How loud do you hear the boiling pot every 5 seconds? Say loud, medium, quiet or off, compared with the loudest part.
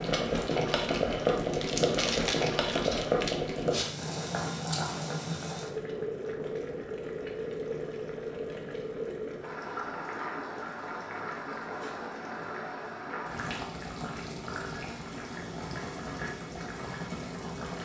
loud, medium, medium, medium.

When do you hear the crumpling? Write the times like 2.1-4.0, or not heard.
0.7-3.4.